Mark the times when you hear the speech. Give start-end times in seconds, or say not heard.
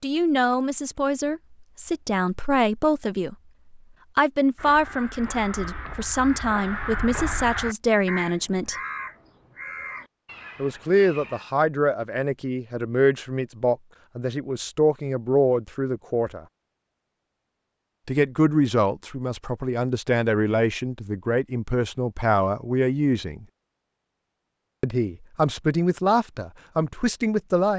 0.0-3.4, 4.2-8.8, 10.6-16.4, 18.1-23.4, 24.8-27.7.